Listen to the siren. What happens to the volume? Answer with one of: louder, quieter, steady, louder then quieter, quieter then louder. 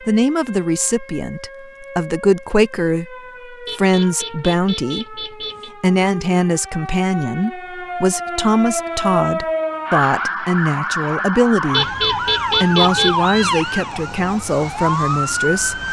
louder.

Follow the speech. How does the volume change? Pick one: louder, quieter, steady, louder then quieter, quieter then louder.
steady.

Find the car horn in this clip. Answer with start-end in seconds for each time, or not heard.
3.6-5.7, 11.7-13.2.